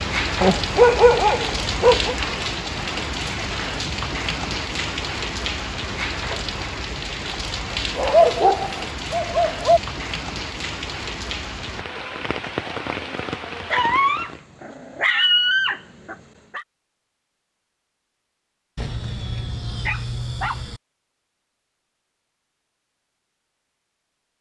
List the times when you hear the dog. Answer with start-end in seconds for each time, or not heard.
0.4-2.1, 8.0-9.8, 13.7-16.6, 18.8-20.8.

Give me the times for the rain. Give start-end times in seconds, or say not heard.
0.0-14.4.